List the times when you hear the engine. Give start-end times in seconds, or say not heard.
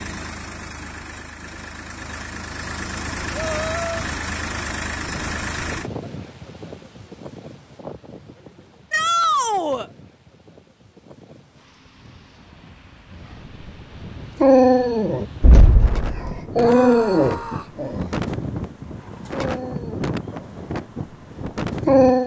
0.0-5.9.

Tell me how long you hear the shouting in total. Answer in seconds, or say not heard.
3 s.